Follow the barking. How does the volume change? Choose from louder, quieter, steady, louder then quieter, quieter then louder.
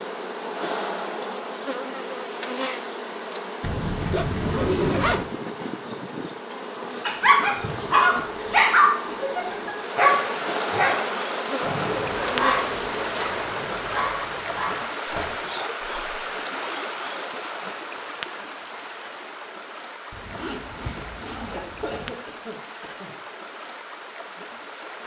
quieter.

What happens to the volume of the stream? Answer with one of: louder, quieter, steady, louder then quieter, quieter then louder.
quieter.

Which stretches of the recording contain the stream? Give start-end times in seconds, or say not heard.
9.8-25.0.